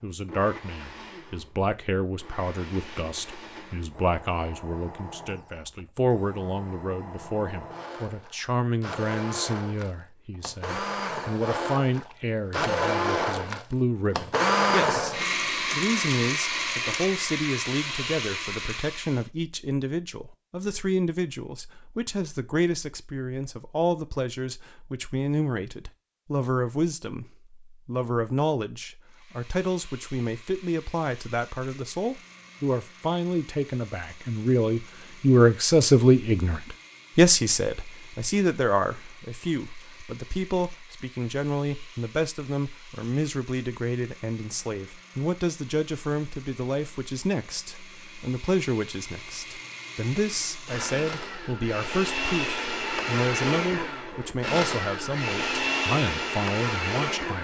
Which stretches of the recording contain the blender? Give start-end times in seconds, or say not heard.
0.1-19.3, 29.1-57.3.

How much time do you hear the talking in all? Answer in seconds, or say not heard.
57 s.